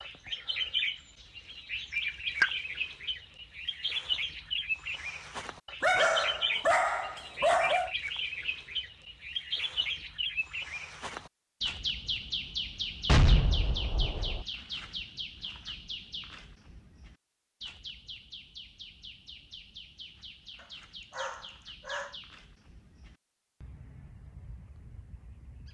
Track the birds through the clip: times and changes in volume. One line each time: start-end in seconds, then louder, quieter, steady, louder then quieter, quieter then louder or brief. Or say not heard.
0.0-25.6 quieter.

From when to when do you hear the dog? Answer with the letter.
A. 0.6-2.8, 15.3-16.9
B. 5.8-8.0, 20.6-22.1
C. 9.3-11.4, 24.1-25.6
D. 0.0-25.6
B.